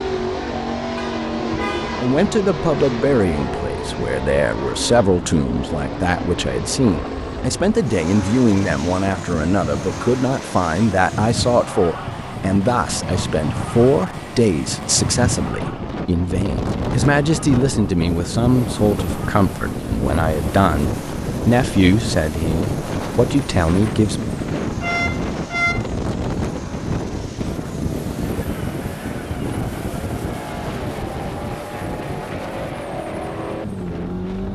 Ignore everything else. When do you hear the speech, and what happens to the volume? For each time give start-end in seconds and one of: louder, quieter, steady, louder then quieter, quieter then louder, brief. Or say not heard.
1.9-24.3 steady.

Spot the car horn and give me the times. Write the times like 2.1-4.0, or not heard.
0.9-2.1, 24.8-25.9.